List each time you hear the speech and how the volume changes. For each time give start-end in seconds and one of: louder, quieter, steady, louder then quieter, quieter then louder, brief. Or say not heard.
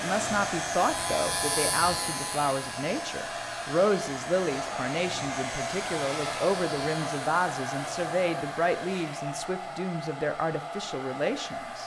0.0-11.8 steady.